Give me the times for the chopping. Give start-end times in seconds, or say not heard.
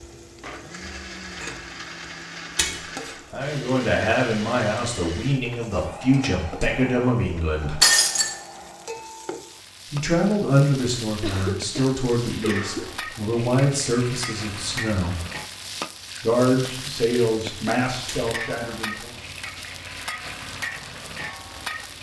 not heard.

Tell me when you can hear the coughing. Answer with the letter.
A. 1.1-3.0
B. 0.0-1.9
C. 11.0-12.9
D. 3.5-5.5
C.